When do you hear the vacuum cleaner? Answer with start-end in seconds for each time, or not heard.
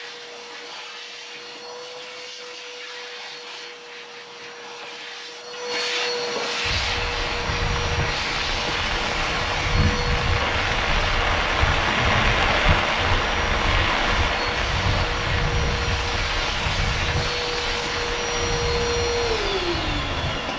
0.0-20.5.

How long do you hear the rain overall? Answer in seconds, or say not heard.
14 s.